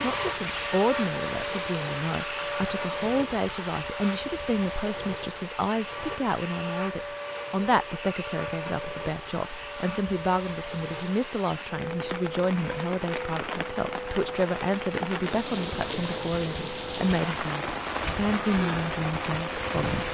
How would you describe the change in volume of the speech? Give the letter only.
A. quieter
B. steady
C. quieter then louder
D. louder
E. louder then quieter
B.